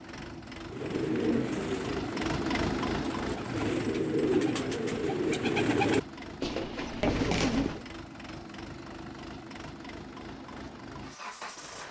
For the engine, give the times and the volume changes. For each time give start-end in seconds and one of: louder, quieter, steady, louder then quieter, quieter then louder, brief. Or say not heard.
0.0-11.8 quieter.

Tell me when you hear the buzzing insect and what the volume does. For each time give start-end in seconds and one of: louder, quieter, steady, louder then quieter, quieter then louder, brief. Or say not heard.
not heard.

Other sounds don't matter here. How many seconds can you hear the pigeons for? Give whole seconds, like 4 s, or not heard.
7 s.